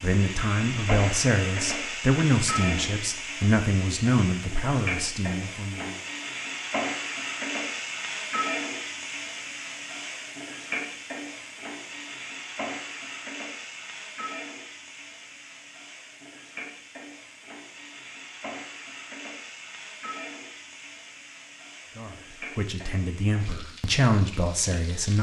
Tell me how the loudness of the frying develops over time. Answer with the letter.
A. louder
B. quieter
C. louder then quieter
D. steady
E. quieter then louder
B.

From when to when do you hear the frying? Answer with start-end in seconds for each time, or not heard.
0.0-25.1.